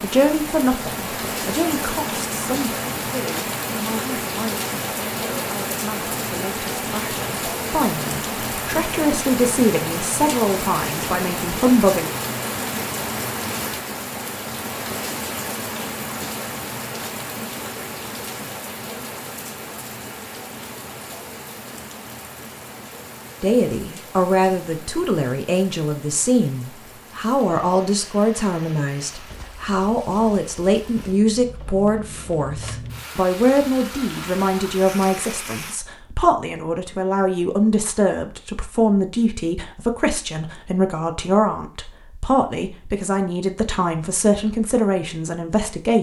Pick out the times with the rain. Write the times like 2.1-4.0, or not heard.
0.0-35.8.